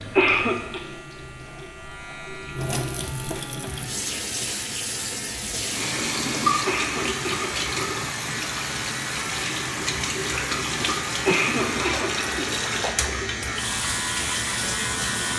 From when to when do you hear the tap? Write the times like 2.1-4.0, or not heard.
0.0-15.3.